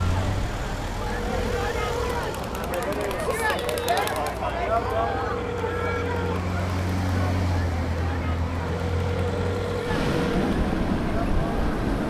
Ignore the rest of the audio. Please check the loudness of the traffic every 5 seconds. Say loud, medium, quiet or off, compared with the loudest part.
medium, medium, loud.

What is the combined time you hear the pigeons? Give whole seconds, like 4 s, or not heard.
not heard.